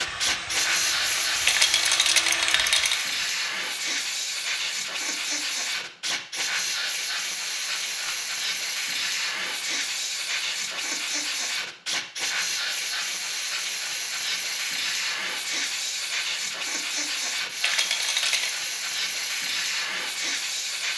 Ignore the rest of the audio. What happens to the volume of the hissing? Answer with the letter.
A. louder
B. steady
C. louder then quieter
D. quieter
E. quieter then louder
B.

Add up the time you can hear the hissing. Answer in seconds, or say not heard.
21 s.